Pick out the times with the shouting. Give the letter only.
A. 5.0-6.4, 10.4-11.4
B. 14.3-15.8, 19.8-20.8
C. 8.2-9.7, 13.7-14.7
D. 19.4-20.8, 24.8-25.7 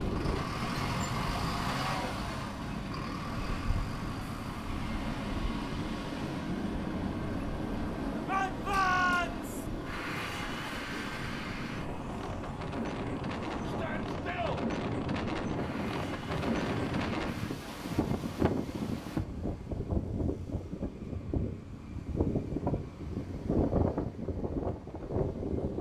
C.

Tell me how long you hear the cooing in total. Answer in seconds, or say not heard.
not heard.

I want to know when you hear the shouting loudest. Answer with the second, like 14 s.
9 s.